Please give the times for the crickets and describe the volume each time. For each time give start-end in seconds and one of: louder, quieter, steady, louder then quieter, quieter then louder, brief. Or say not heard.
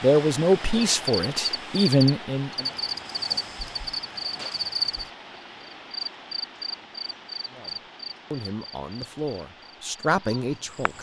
0.0-10.9 quieter.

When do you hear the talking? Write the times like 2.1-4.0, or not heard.
0.0-2.6, 7.5-10.9.